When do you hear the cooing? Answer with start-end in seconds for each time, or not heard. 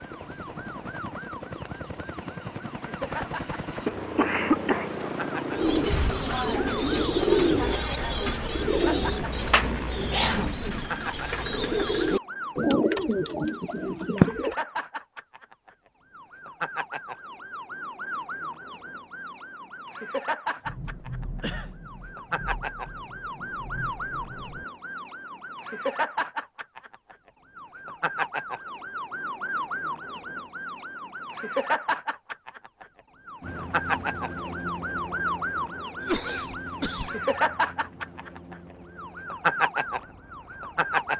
5.5-14.6.